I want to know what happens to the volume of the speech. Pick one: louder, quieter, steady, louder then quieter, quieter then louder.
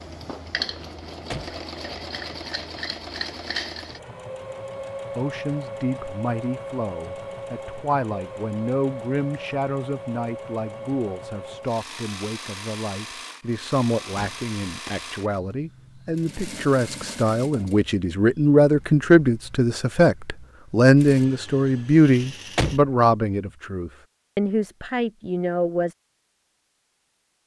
louder.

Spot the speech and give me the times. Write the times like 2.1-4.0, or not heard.
5.2-25.9.